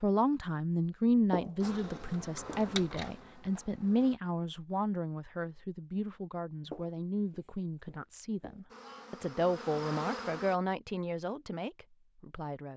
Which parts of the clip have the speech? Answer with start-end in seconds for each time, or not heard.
0.0-12.7.